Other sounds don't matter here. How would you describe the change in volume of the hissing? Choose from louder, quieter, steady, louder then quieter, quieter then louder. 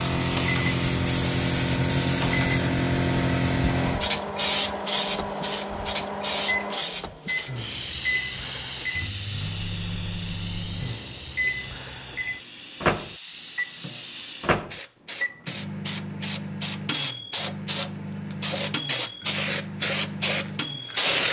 quieter then louder.